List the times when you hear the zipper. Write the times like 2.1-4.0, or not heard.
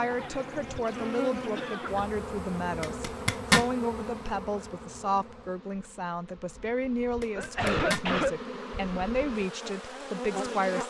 2.8-3.6, 7.2-8.1.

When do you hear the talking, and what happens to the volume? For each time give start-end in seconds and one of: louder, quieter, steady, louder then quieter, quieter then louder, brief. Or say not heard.
0.0-10.8 steady.